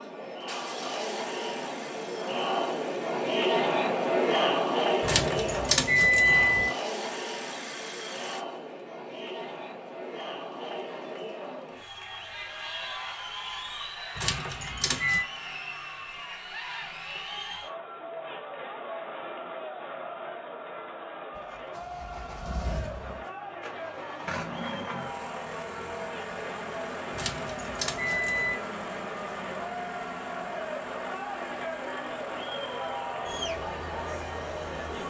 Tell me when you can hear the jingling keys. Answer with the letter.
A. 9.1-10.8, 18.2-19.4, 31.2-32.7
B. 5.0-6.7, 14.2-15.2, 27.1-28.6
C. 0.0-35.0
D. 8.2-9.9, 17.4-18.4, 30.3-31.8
B.